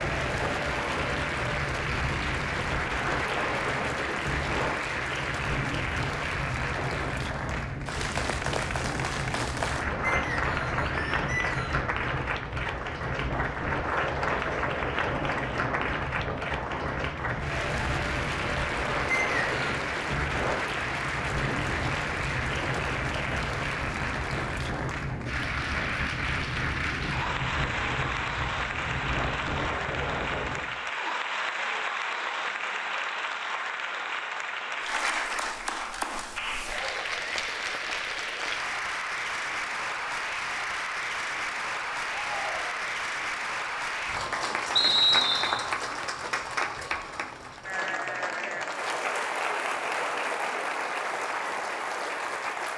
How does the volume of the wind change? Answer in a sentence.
The volume of the wind stays about the same.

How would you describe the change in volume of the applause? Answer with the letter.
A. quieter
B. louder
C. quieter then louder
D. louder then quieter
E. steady
E.